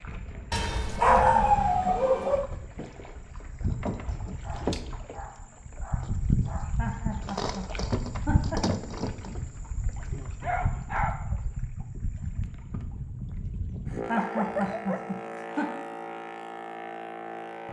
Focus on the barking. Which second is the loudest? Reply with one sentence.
The loudest moment of the barking is at 1 second.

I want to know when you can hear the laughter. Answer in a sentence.
The laughter can be heard from 1.1 to 1.9 s, from 6.8 to 8.8 s and from 14.1 to 15.7 s.